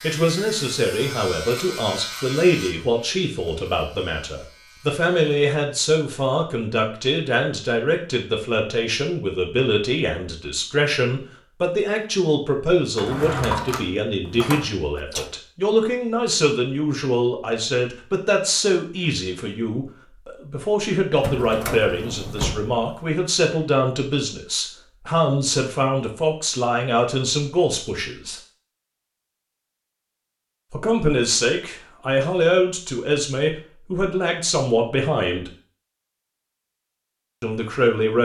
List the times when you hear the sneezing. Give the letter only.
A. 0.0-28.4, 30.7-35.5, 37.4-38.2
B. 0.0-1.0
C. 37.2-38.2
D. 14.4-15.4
D.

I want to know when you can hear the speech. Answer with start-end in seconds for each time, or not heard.
0.0-28.4, 30.7-35.5, 37.4-38.2.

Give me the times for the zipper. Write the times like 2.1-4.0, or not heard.
not heard.